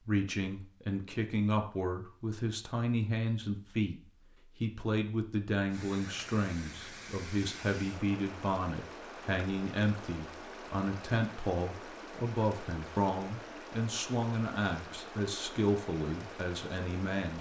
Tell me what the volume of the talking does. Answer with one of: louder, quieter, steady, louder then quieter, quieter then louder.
steady.